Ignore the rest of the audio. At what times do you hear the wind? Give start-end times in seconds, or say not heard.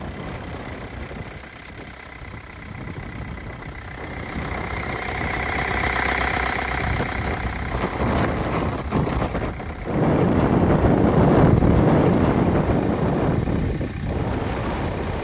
0.0-15.2.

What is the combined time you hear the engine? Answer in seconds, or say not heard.
15 s.